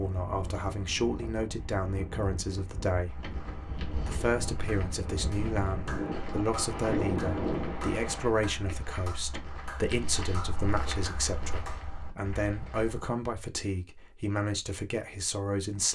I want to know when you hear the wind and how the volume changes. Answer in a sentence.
The wind can be heard from 0.0 to 8.3 s, getting louder.